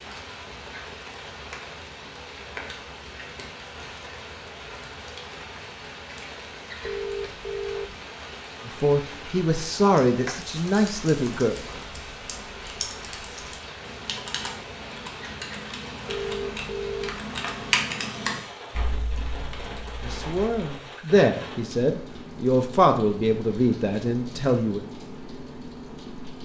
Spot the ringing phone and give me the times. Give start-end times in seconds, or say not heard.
6.8-8.0, 16.1-17.2.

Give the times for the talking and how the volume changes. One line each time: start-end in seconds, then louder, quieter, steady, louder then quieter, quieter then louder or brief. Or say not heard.
8.7-11.6 brief
20.0-24.8 steady.